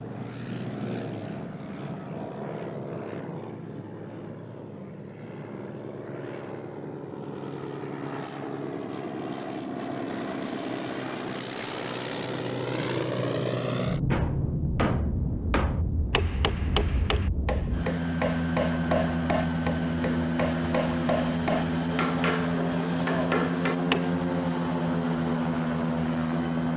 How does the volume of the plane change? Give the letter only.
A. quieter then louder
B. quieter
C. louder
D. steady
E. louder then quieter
C.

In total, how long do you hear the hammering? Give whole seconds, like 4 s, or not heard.
10 s.